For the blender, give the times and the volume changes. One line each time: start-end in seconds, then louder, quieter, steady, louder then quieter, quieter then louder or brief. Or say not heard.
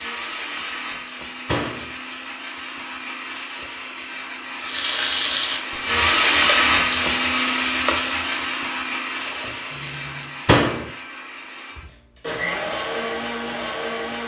0.0-14.2 louder then quieter.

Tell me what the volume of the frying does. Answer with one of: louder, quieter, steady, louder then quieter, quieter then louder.
quieter.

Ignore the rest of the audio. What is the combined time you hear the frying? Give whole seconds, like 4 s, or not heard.
6 s.